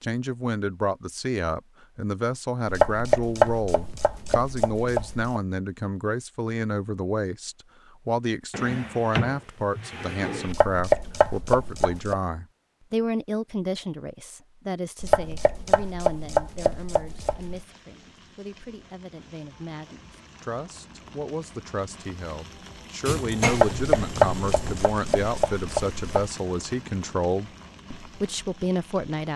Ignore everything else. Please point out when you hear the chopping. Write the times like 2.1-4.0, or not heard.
2.7-5.4, 10.4-12.2, 15.0-17.6, 23.4-26.3.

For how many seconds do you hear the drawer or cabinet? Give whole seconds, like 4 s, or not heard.
4 s.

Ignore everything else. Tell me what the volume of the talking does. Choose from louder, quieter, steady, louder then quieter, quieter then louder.
quieter then louder.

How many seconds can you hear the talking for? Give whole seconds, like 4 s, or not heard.
29 s.